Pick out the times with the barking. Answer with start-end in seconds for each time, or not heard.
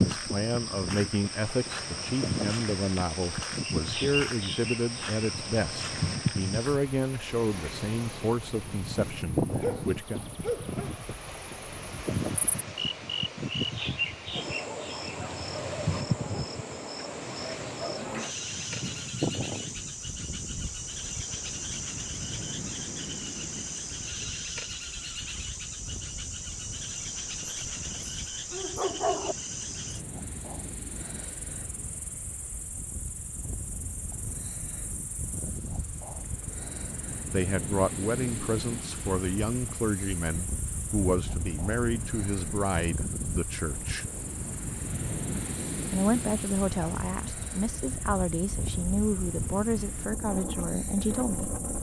9.6-11.0, 27.4-29.4.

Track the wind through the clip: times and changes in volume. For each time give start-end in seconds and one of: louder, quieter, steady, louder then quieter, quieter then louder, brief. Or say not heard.
0.0-51.7 quieter then louder.